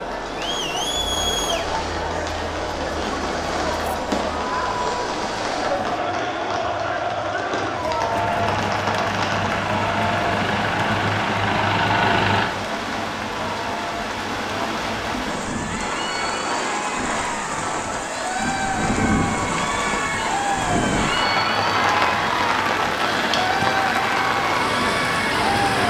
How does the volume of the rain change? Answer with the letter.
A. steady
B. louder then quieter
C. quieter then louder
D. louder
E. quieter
D.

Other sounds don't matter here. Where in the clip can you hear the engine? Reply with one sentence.
The engine can be heard from 8.1 to 12.6 s.